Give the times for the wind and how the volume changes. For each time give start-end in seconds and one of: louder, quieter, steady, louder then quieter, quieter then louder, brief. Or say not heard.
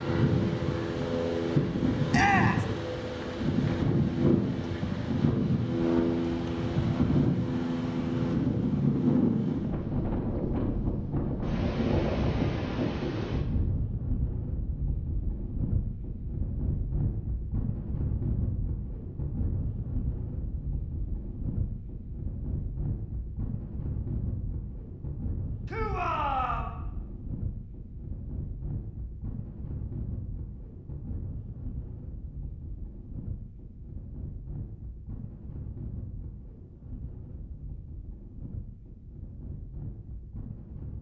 0.0-40.9 quieter.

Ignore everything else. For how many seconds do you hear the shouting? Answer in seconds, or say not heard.
2 s.